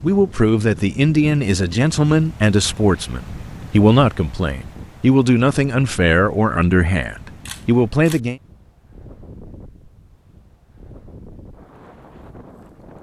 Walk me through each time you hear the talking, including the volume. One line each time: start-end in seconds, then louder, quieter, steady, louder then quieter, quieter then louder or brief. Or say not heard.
0.0-8.4 steady.